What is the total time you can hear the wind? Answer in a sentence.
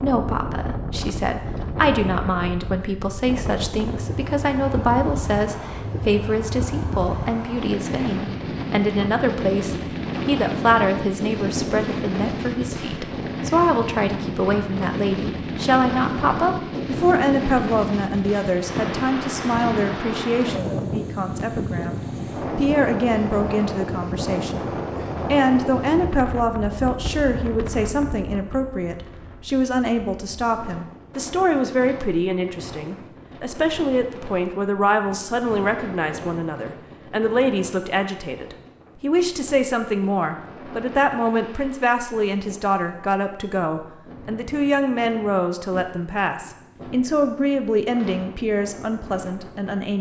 The wind can be heard for 50 seconds in total.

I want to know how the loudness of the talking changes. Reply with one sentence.
The loudness of the talking stays about the same.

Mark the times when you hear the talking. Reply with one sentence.
You can hear the talking from 0.0 to 49.9 s.